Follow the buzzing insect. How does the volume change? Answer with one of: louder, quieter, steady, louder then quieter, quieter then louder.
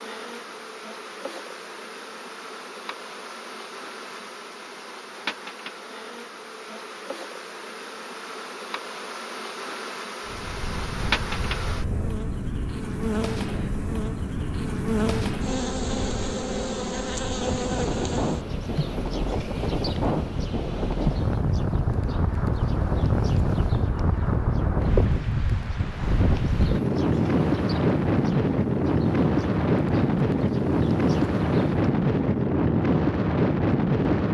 louder then quieter.